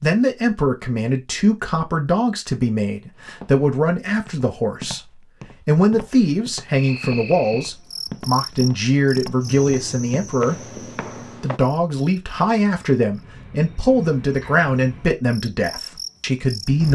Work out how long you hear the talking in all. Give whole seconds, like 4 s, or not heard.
16 s.